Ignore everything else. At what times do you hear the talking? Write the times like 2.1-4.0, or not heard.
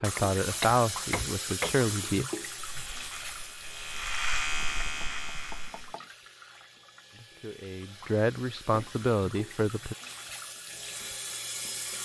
0.0-2.2, 7.1-9.9.